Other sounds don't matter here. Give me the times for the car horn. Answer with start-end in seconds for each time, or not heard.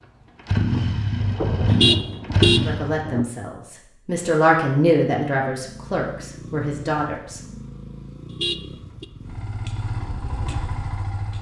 1.7-2.6, 8.3-9.1.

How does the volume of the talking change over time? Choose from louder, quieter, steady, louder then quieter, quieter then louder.
louder then quieter.